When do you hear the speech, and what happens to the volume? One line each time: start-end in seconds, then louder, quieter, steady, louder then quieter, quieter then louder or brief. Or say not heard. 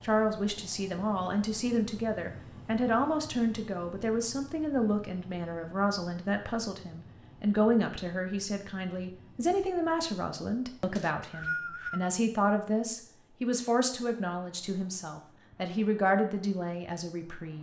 0.0-17.5 steady.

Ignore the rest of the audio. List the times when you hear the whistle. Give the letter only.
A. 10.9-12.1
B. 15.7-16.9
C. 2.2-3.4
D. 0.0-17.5
A.